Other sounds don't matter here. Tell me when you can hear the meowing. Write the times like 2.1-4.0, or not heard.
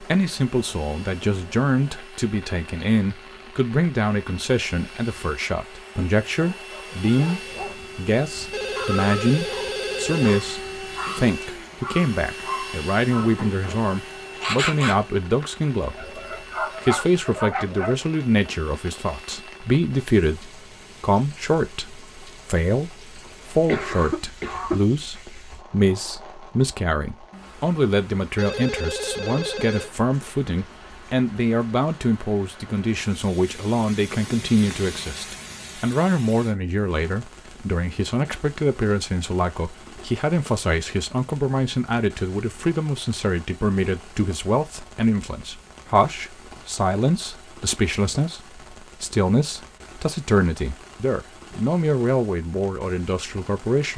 not heard.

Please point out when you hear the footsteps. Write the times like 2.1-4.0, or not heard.
not heard.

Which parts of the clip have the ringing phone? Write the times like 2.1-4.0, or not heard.
8.5-10.4, 28.4-29.9.